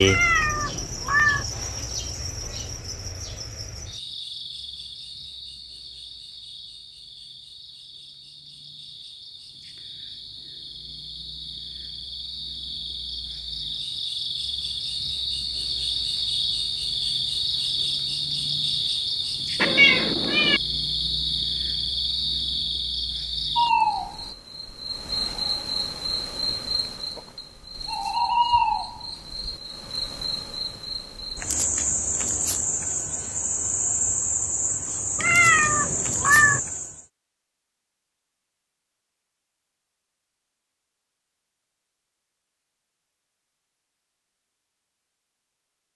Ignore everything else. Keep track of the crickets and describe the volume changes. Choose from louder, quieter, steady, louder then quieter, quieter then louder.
louder.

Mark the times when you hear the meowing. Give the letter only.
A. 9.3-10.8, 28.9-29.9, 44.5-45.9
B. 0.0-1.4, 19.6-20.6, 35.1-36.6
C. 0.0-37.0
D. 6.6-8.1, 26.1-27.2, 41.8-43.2
B.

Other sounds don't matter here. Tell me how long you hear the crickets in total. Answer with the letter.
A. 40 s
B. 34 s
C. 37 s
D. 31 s
C.